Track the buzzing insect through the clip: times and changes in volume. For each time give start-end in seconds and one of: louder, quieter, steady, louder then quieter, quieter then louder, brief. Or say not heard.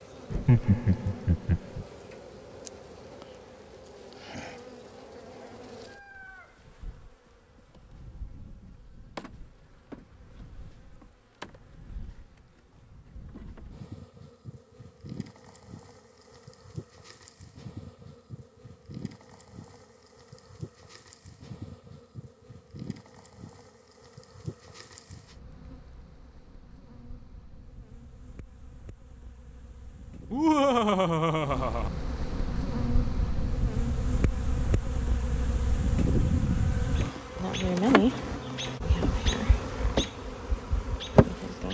0.0-41.7 louder.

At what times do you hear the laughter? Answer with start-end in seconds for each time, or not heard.
0.3-1.9, 30.3-31.9.